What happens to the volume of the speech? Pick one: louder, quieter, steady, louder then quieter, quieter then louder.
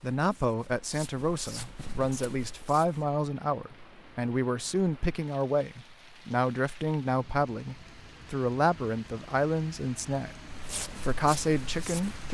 steady.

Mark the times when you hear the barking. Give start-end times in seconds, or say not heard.
not heard.